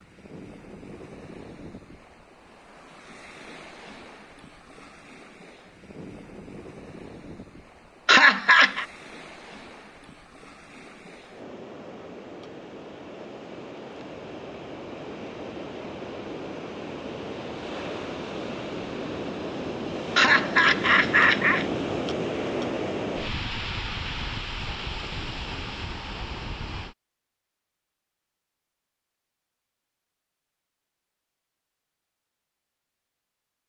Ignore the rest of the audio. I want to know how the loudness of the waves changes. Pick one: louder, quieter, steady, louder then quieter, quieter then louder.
louder.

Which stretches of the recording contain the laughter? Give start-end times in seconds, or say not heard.
8.1-8.8, 20.1-21.6.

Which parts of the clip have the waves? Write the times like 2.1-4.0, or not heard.
0.0-26.9.